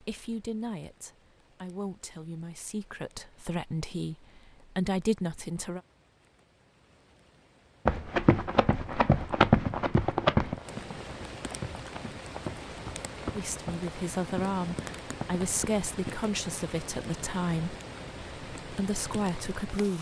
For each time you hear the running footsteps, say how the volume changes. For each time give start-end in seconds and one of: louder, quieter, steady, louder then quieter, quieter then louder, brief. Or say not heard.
7.8-16.2 quieter.